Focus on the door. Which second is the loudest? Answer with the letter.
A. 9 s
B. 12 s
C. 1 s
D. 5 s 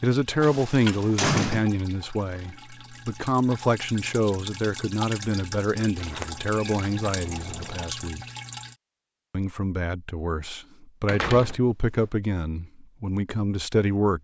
C.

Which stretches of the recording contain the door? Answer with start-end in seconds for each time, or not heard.
0.4-1.6, 6.0-7.8, 11.1-11.6.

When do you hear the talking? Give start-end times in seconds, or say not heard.
0.0-8.2, 9.3-14.1.